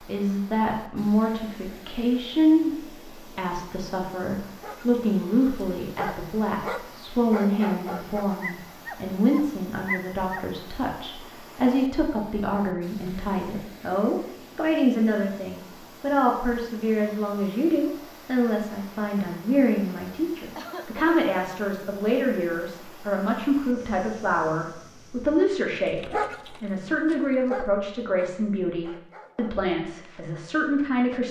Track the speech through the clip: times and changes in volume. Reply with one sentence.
The speech can be heard from 0.0 to 31.2 s, at a steady volume.